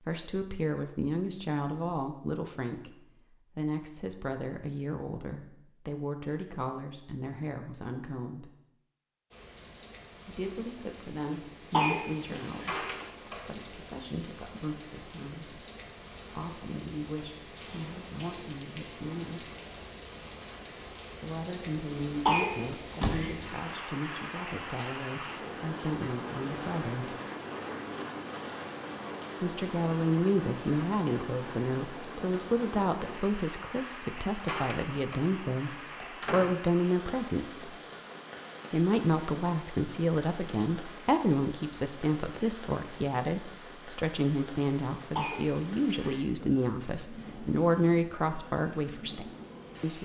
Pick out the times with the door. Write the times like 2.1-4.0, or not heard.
12.4-13.6, 22.9-23.5, 34.2-36.5.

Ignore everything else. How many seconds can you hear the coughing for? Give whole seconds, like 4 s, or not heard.
3 s.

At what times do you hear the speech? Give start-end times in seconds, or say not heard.
0.0-8.6, 10.2-15.7, 16.4-19.5, 21.2-27.1, 29.4-37.7, 38.7-49.9.